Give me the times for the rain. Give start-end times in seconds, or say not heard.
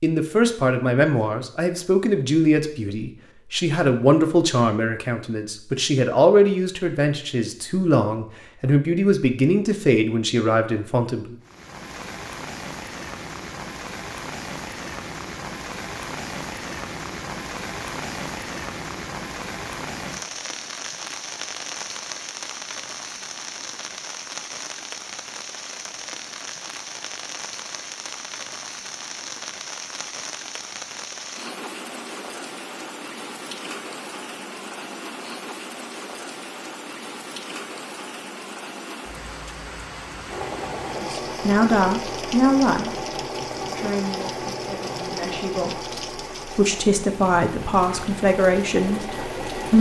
11.4-49.7.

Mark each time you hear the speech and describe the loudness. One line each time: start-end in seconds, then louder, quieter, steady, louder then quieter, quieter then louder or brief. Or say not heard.
0.0-11.3 steady
41.0-49.7 quieter then louder.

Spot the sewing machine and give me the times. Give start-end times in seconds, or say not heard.
40.3-49.7.